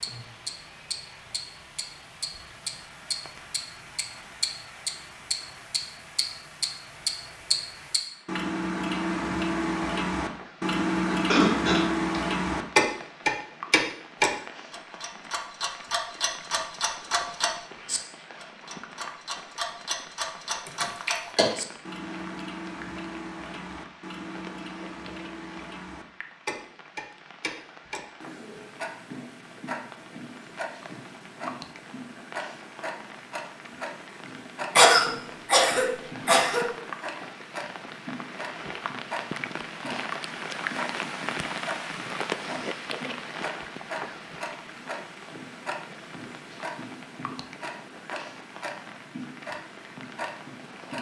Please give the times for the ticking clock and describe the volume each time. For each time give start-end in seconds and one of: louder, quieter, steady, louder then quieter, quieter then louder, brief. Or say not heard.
0.0-50.9 quieter.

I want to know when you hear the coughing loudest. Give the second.
35 s.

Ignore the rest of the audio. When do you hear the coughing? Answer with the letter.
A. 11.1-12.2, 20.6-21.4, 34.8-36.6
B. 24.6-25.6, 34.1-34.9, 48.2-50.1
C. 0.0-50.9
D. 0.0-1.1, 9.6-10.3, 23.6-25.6
A.